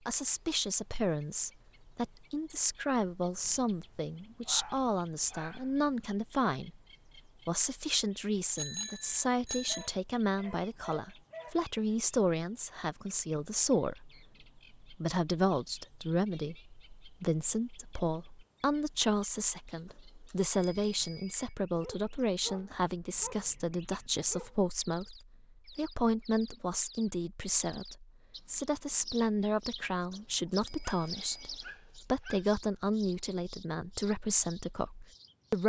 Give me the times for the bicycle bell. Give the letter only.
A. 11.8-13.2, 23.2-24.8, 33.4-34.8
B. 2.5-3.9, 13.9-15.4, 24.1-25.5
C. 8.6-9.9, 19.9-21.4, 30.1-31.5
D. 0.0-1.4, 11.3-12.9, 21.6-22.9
C.